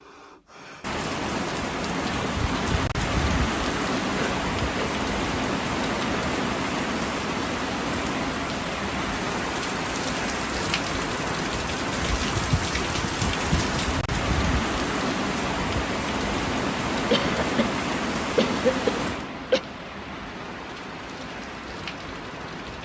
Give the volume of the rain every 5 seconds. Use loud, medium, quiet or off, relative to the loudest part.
loud, loud, loud, loud, medium.